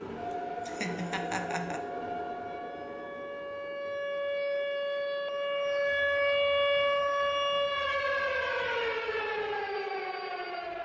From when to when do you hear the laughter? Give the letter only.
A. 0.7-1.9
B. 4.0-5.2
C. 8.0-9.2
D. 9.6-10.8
A.